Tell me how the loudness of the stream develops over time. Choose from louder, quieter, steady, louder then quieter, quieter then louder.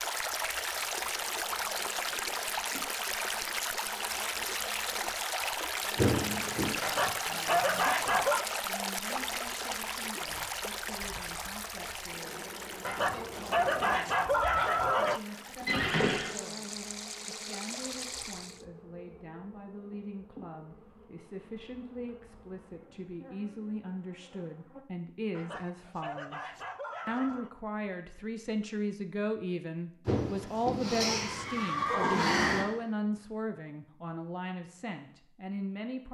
quieter.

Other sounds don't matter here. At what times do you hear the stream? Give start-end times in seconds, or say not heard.
0.0-18.6.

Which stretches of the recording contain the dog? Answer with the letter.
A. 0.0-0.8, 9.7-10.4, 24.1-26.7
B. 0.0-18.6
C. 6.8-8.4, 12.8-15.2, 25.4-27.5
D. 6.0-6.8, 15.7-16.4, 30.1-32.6
C.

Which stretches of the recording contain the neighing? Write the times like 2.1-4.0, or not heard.
6.0-6.8, 15.7-16.4, 30.1-32.6.